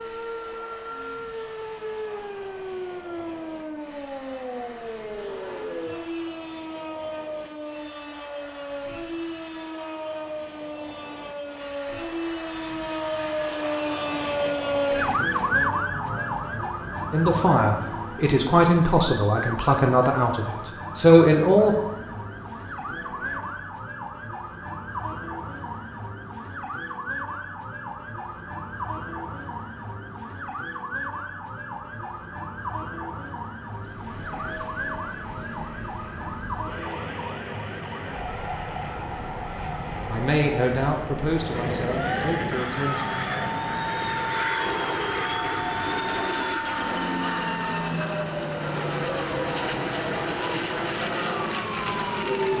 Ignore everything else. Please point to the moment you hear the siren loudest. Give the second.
15 s.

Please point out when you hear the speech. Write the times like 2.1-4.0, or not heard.
17.1-21.8, 39.6-43.0.